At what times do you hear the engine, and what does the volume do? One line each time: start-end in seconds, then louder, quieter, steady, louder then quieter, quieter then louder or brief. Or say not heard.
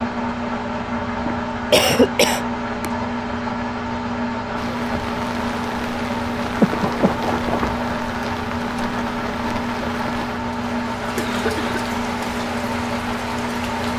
0.0-13.9 steady.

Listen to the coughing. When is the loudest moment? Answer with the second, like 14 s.
2 s.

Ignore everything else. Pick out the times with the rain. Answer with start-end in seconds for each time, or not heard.
4.5-13.9.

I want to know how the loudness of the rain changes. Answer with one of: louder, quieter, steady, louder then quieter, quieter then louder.
steady.